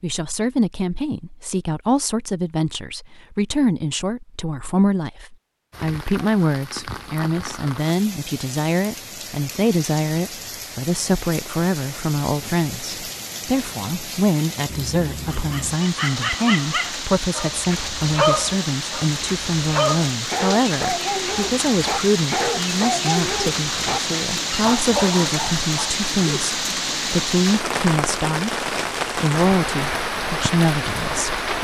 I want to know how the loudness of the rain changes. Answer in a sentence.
The loudness of the rain goes up.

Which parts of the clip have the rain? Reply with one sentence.
The rain can be heard from 5.7 to 31.6 s.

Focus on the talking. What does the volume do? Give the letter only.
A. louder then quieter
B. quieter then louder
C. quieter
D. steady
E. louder
D.